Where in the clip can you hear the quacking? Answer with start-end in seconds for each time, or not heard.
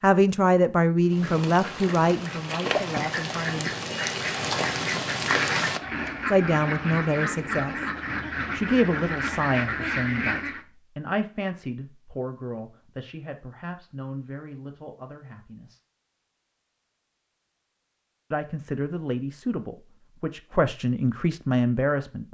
1.1-10.7.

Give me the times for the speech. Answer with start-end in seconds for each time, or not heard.
0.0-3.7, 6.3-7.8, 8.5-15.8, 18.3-22.3.